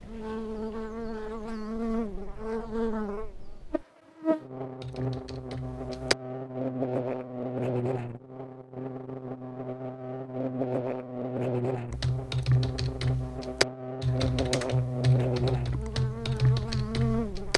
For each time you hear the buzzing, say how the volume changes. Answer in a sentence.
The buzzing can be heard from 0.0 to 17.5 s, at a steady volume.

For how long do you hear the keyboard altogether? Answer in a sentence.
The keyboard can be heard for 7 seconds in total.